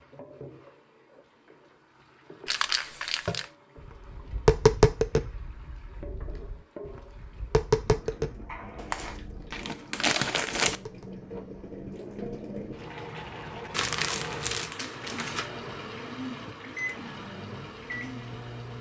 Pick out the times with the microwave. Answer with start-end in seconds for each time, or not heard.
16.8-18.7.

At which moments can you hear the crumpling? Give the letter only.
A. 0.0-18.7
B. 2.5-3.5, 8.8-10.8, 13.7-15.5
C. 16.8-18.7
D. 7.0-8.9
B.